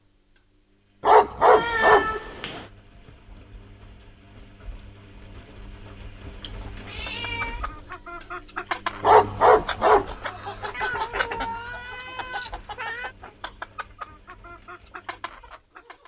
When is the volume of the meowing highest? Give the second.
2 s.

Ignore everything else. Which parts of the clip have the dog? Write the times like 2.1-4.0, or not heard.
1.0-2.1, 9.0-10.1.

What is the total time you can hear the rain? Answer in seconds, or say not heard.
not heard.